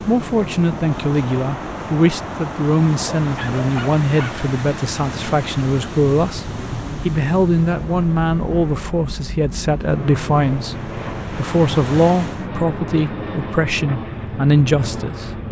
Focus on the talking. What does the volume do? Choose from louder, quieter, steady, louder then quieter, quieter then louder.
steady.